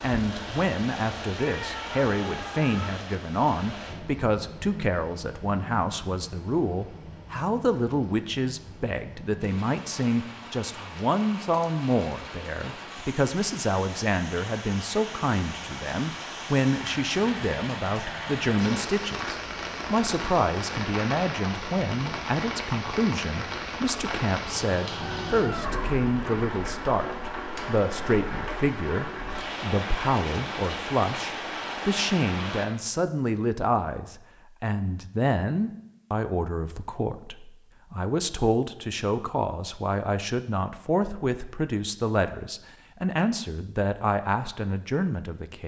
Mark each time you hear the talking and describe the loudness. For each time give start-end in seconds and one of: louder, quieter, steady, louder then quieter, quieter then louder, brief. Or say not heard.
0.0-45.6 steady.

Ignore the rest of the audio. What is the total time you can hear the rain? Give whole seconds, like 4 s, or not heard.
33 s.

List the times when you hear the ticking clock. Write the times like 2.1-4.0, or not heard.
not heard.